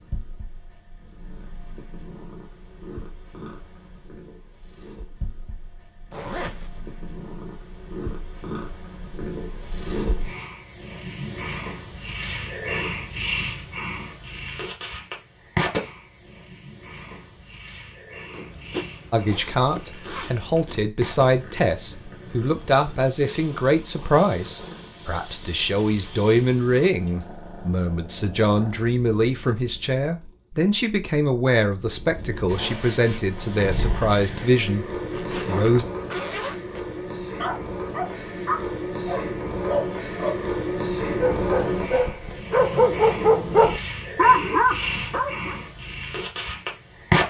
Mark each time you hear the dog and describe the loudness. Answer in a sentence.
You can hear the dog from 36.2 to 45.5 s, getting louder.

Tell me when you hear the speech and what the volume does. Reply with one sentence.
The speech can be heard from 19.1 to 35.9 s, at a steady volume.